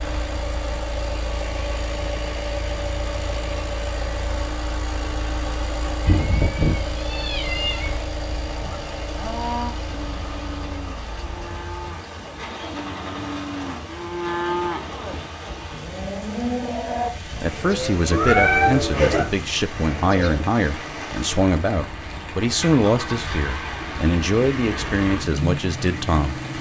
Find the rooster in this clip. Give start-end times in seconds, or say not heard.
not heard.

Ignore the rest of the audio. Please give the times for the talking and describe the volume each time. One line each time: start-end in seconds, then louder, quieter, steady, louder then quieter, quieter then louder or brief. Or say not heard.
17.4-26.4 steady.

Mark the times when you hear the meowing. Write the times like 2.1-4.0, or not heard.
6.0-8.0, 18.1-19.2.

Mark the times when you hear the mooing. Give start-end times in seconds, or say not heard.
8.5-20.5.